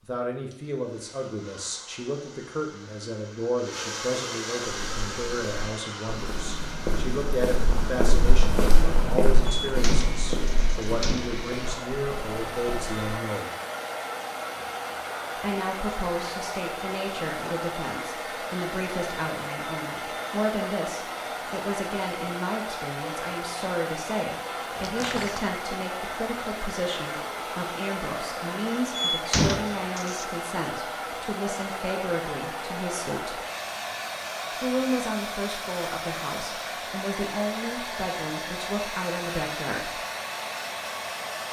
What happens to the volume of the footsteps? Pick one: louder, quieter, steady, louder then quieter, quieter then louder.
louder then quieter.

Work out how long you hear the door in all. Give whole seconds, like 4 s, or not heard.
4 s.